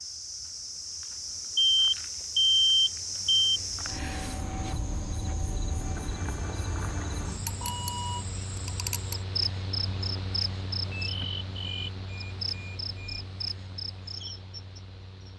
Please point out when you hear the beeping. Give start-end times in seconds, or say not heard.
1.6-3.6, 7.3-8.2, 10.8-13.3.